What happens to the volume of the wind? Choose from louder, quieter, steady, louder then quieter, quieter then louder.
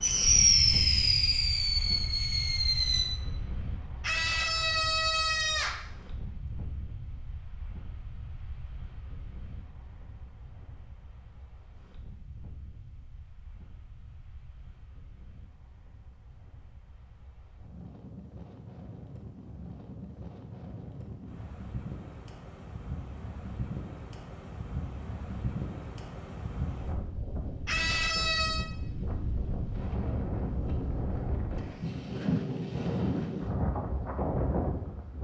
quieter then louder.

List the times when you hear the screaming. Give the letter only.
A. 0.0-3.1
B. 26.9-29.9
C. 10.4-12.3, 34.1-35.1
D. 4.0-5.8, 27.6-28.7
D.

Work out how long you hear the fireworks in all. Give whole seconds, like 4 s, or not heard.
3 s.